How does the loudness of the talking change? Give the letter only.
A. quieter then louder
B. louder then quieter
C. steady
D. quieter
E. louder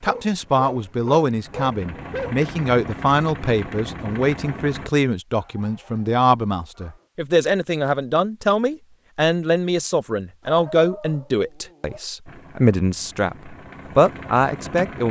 C.